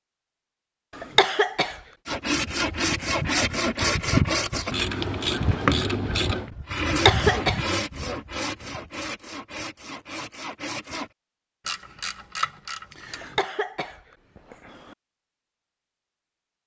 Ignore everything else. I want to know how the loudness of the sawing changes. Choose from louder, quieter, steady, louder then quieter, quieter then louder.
quieter.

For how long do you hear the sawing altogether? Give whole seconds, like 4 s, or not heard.
9 s.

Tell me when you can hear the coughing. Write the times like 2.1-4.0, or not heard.
0.9-1.8, 6.8-7.6, 13.2-14.9.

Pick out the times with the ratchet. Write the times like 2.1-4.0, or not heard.
4.7-6.5, 11.7-13.4.